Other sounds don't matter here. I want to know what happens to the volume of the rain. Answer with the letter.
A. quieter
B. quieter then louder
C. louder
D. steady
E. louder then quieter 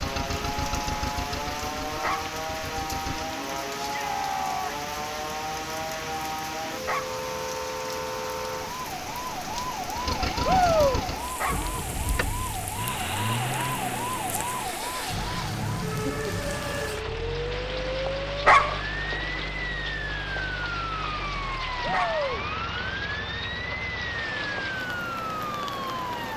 D.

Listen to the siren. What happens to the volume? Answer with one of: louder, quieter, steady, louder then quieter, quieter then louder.
steady.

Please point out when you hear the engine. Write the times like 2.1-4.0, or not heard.
0.0-3.3, 9.9-26.3.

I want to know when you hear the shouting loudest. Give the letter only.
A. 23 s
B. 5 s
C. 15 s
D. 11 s
D.